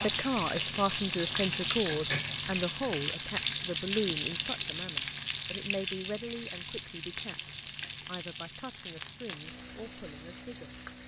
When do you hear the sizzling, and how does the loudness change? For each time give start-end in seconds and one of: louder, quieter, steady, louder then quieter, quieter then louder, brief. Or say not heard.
0.0-11.0 quieter.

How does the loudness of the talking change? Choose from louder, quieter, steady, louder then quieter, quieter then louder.
quieter.